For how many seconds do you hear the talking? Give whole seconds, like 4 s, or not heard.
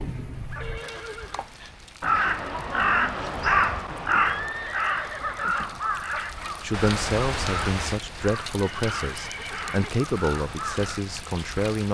5 s.